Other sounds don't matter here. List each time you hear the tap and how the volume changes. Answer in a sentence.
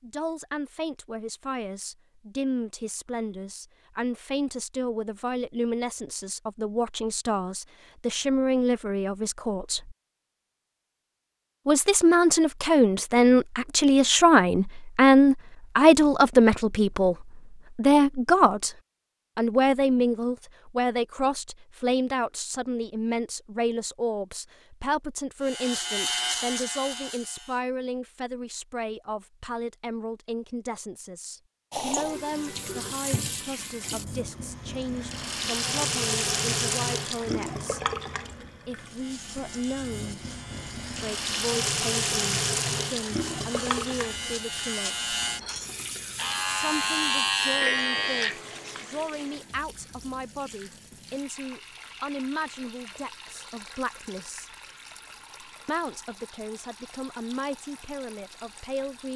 The tap can be heard from 31.7 to 59.1 s, getting quieter.